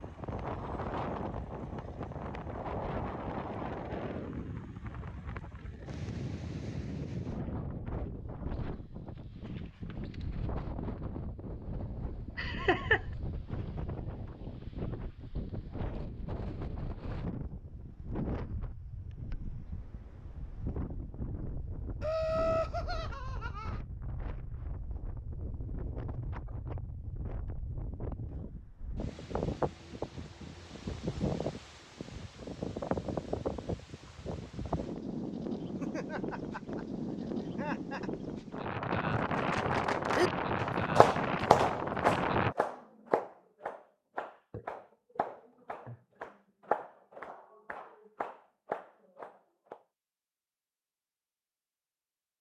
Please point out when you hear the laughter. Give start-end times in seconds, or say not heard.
12.3-13.0, 22.0-23.8, 35.8-38.1.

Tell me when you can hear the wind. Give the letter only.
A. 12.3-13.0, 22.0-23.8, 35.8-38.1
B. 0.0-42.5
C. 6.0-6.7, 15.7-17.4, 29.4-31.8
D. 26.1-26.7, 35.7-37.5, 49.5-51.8
B.